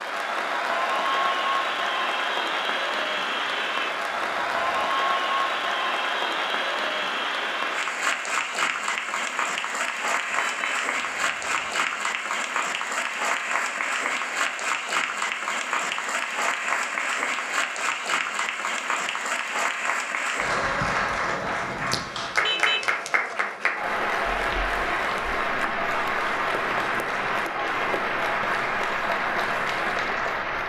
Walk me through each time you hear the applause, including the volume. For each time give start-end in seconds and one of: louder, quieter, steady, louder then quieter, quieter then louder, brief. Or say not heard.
0.0-30.6 steady.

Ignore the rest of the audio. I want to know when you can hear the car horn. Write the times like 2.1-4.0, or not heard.
3.5-4.9, 10.3-11.8, 22.4-22.9.